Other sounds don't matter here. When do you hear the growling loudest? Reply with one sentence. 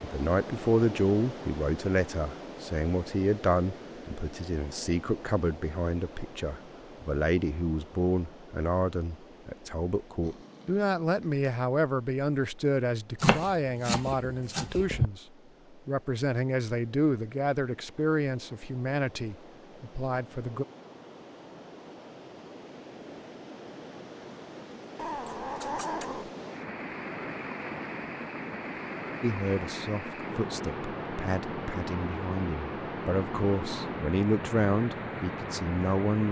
The loudest moment of the growling is at 26 seconds.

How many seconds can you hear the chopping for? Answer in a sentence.
You can hear the chopping for 2 seconds altogether.